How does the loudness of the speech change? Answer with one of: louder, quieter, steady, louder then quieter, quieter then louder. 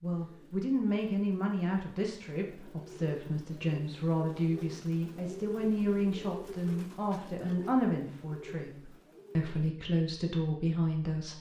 steady.